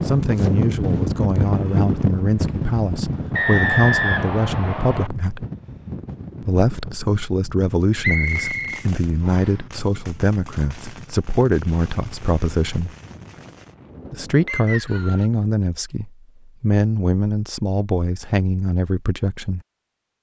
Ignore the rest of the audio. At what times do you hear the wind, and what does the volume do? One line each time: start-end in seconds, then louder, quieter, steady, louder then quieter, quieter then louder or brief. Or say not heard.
0.0-14.5 quieter.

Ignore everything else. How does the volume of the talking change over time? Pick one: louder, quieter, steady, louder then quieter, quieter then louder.
steady.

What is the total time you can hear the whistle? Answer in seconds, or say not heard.
4 s.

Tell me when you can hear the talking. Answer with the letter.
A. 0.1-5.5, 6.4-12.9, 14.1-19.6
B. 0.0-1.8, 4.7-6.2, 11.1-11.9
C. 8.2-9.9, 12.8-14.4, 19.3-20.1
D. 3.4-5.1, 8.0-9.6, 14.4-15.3
A.